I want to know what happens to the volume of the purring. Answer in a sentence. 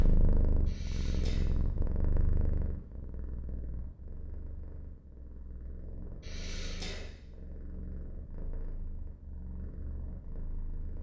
The loudness of the purring goes down.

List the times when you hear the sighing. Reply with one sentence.
The sighing can be heard from 0.7 to 1.5 s and from 6.2 to 7.1 s.